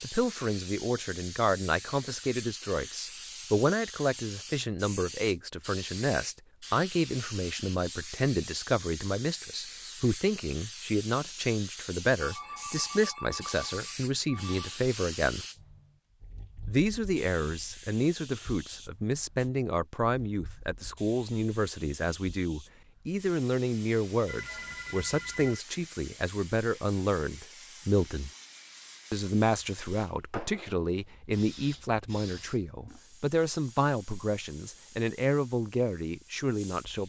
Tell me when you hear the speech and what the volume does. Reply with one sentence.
You can hear the speech from 0.0 to 15.4 s, at a steady volume; from 16.6 to 28.3 s, at a steady volume; and from 29.1 to 37.0 s, at a steady volume.